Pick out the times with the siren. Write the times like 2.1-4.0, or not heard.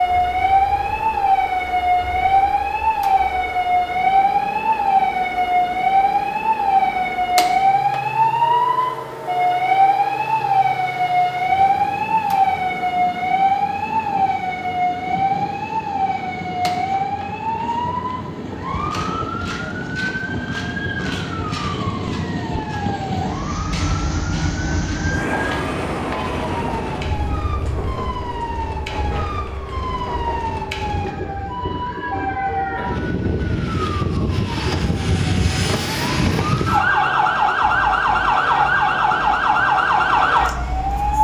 0.0-41.1.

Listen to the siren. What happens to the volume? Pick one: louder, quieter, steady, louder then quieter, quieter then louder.
quieter then louder.